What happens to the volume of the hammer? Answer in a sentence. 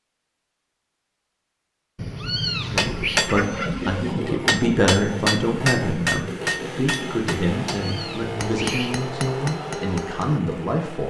The loudness of the hammer goes down.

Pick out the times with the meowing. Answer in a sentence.
The meowing can be heard from 1.9 to 3.2 s and from 7.8 to 8.9 s.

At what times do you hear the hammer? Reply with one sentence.
The hammer can be heard from 2.6 to 10.6 s.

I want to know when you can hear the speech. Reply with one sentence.
You can hear the speech from 2.7 to 11.0 s.